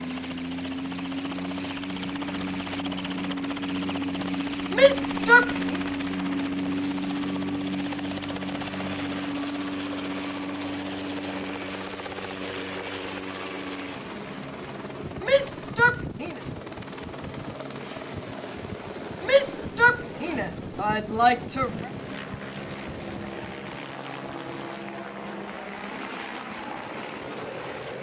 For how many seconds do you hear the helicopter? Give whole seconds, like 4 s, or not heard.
28 s.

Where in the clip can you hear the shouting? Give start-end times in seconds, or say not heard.
4.7-5.8, 15.2-16.4, 19.2-21.9.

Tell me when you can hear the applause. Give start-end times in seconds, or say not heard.
not heard.